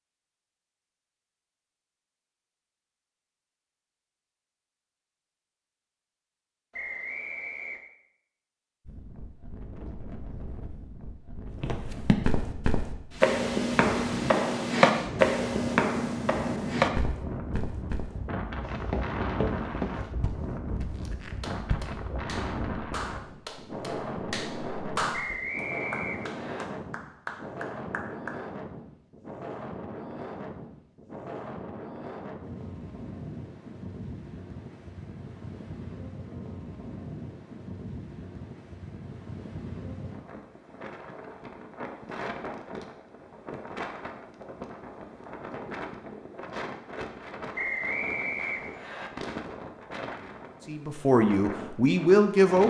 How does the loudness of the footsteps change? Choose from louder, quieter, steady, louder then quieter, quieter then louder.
quieter.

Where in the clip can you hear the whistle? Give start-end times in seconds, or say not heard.
6.7-7.8, 25.1-26.6, 47.5-49.1.